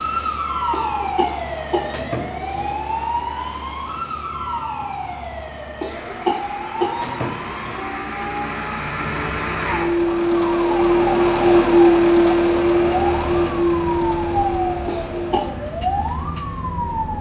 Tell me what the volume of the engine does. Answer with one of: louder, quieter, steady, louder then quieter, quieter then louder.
louder then quieter.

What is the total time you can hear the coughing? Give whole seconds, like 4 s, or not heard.
5 s.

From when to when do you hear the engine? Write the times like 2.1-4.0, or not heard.
0.0-17.1.